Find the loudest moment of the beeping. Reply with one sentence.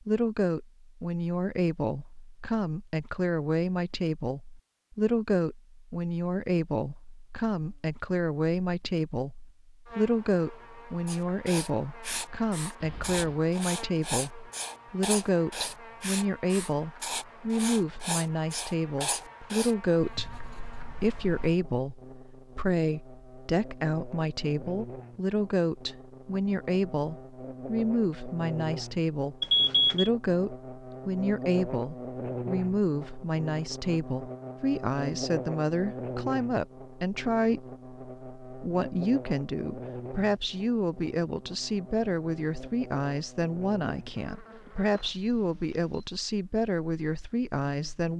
The volume of the beeping peaks at 30 seconds.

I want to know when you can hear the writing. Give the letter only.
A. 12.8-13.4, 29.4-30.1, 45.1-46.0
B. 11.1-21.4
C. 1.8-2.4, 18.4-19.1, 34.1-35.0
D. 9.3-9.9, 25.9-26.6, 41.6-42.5
B.